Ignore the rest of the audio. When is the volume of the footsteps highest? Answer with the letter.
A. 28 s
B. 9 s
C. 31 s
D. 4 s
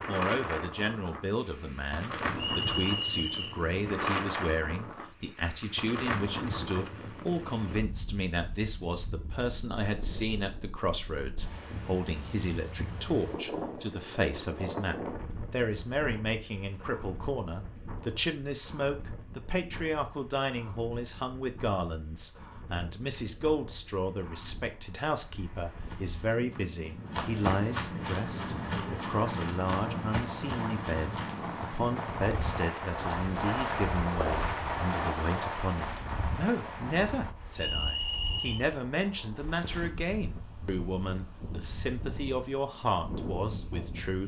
A.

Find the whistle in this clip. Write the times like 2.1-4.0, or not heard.
2.4-3.6, 37.5-38.6.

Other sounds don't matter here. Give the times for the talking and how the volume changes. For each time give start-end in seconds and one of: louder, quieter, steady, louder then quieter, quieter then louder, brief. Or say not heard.
0.1-44.2 steady.